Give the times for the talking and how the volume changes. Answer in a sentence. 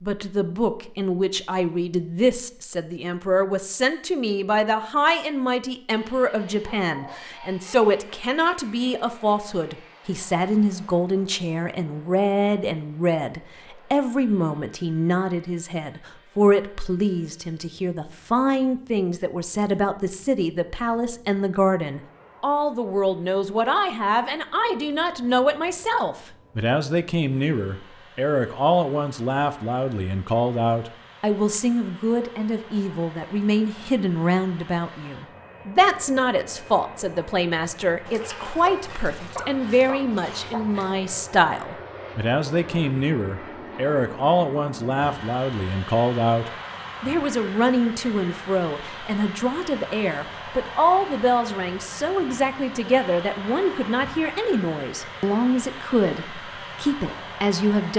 You can hear the talking from 0.0 to 57.9 s, at a steady volume.